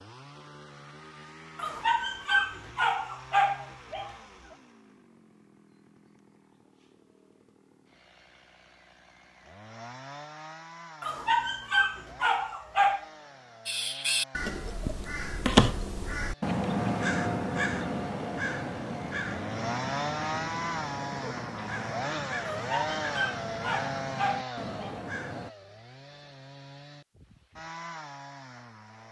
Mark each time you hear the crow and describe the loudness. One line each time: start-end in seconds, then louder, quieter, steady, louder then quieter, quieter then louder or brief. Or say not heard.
13.7-25.5 quieter.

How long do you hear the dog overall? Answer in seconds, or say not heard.
7 s.